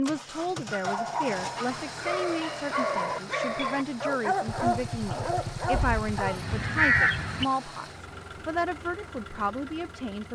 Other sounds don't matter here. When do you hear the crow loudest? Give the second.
7 s.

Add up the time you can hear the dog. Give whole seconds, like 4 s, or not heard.
6 s.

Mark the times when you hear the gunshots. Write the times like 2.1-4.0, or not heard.
4.5-6.5.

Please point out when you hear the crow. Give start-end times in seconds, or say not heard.
5.7-7.5.